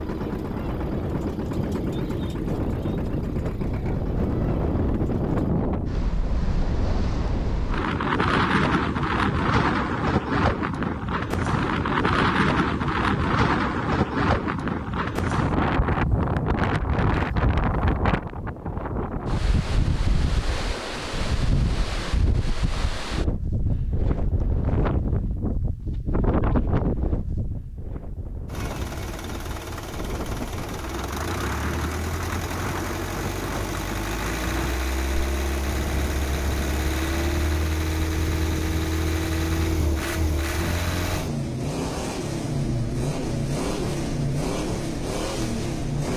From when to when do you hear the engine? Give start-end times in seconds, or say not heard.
0.0-5.5, 28.5-46.1.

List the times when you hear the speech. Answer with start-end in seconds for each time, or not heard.
not heard.